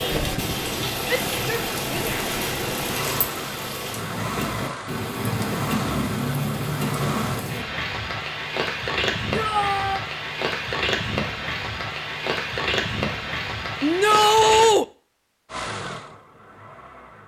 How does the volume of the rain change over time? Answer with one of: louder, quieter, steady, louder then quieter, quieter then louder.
steady.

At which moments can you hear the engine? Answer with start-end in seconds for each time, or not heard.
0.0-7.5, 15.5-17.2.